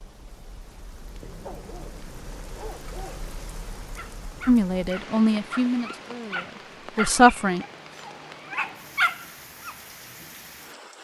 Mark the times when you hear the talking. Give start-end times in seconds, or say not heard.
4.5-7.7.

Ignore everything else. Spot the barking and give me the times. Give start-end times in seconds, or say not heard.
1.4-1.9, 2.5-3.2, 4.0-9.8.